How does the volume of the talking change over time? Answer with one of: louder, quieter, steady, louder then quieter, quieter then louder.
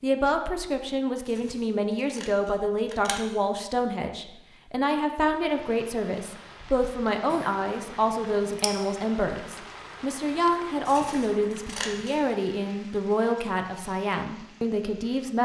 steady.